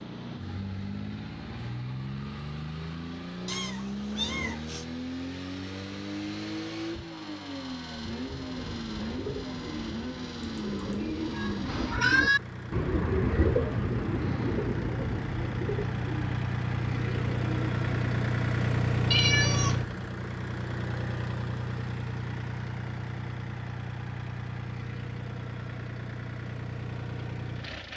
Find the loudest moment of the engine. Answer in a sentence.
The loudest moment of the engine is at 19 seconds.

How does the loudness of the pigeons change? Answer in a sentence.
The volume of the pigeons goes up, then down.